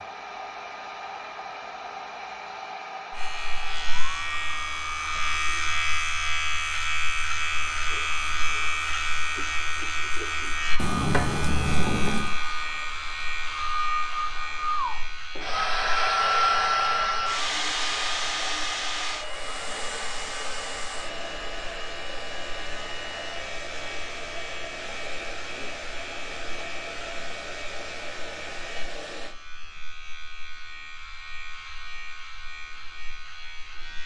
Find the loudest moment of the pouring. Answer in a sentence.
The loudest moment of the pouring is at 11 seconds.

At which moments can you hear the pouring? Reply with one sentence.
You can hear the pouring from 10.8 to 12.3 s.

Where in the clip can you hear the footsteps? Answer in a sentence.
The footsteps can't be heard in this clip.